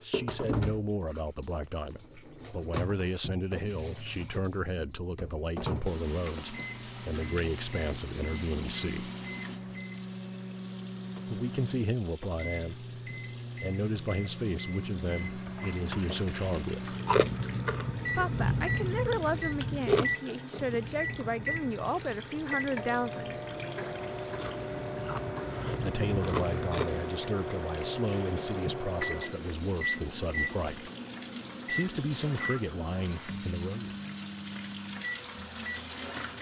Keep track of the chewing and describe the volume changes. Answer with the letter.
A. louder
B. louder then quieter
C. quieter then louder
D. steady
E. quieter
C.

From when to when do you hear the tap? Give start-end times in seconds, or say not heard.
0.0-36.3.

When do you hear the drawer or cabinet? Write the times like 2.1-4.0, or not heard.
not heard.